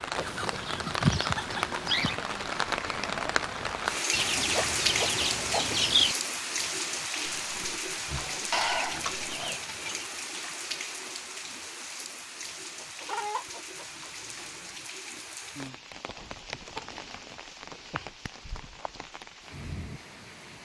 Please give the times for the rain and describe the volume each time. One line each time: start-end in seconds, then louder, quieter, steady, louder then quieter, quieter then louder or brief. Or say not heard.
0.0-20.6 quieter.